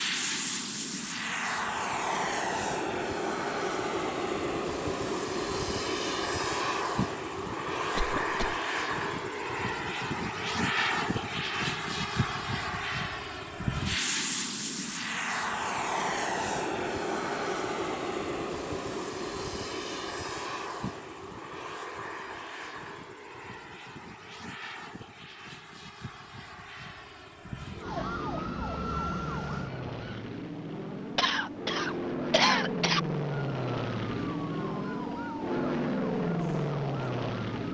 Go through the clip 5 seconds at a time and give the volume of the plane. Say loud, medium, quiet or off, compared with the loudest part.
loud, loud, loud, loud, medium, medium, loud, loud.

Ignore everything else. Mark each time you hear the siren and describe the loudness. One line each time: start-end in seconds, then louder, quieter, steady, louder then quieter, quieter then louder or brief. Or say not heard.
27.8-30.2 brief
33.5-37.7 steady.